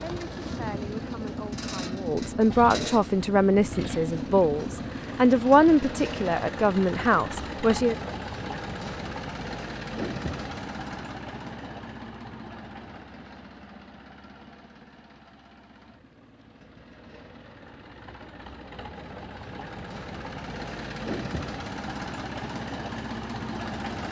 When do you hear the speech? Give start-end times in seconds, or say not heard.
0.0-8.0.